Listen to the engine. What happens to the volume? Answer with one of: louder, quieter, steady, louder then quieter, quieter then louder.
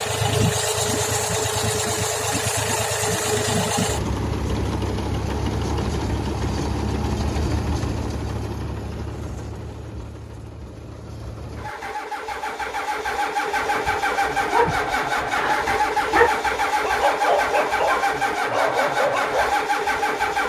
quieter then louder.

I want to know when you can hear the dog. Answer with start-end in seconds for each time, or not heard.
13.7-19.6.